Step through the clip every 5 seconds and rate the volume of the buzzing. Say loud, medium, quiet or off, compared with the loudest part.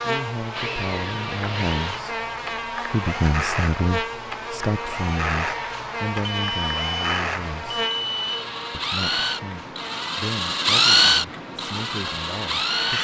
loud, loud, medium.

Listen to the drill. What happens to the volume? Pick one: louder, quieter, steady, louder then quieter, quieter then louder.
louder.